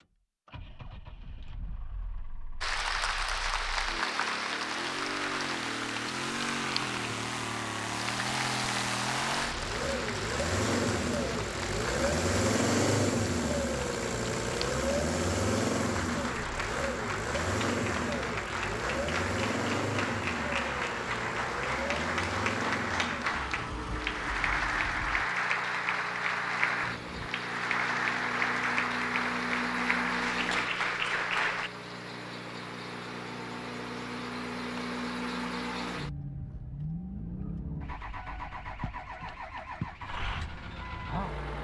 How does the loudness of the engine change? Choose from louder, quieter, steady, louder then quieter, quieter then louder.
louder then quieter.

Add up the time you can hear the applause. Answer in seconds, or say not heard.
29 s.